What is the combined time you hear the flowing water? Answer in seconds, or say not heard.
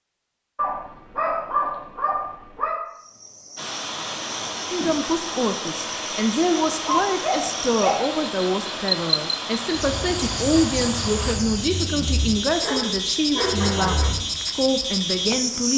12 s.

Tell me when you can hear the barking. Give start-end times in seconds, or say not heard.
0.6-2.8, 6.8-8.0, 12.6-14.1.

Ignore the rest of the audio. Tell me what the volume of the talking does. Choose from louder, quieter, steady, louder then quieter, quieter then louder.
steady.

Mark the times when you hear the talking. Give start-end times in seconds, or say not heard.
4.7-15.7.